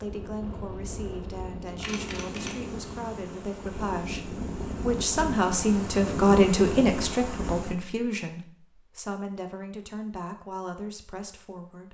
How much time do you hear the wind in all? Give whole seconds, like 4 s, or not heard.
8 s.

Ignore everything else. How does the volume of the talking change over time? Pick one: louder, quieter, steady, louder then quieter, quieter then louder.
louder then quieter.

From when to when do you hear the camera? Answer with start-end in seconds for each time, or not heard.
1.8-2.8.